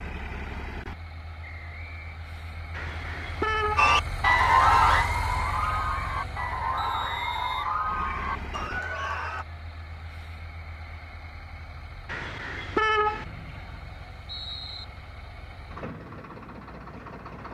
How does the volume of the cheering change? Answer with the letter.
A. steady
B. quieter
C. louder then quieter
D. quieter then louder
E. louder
B.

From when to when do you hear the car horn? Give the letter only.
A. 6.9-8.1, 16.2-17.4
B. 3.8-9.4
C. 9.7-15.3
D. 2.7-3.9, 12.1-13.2
D.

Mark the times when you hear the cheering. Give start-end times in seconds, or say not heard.
3.8-9.4.